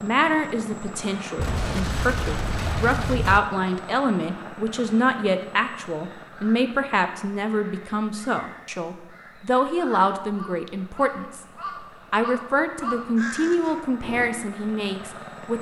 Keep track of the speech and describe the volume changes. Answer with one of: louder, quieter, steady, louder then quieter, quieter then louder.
steady.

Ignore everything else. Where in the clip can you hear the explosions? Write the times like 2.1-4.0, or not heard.
1.4-3.4.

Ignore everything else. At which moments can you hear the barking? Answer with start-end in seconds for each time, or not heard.
not heard.